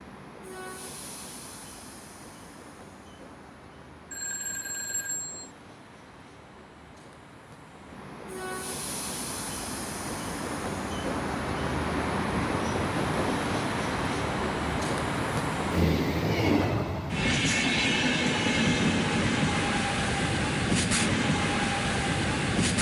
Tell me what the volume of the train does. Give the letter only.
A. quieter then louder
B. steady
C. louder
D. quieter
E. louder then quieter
C.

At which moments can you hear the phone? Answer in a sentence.
The phone can be heard from 4.1 to 5.5 s.